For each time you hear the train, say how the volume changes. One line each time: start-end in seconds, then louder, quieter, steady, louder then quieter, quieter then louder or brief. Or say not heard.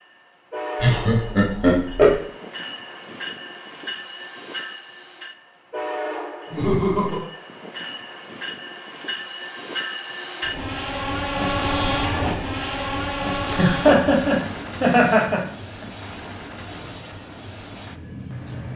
0.0-18.7 louder then quieter.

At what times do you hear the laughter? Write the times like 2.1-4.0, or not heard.
0.8-2.2, 6.5-7.2, 13.4-15.8.